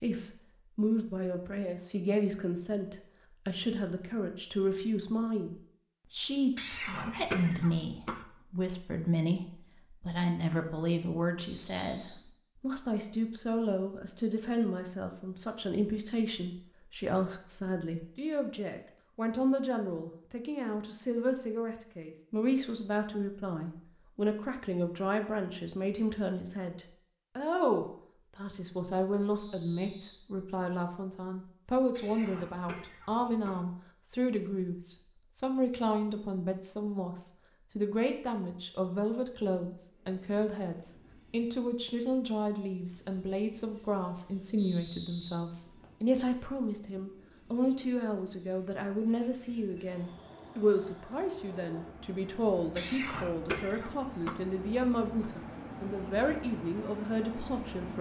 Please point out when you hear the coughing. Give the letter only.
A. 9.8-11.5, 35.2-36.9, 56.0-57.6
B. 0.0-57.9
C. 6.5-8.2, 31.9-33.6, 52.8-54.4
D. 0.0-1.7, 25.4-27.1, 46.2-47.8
C.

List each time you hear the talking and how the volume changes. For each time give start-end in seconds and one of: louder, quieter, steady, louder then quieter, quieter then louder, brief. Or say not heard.
0.0-57.9 steady.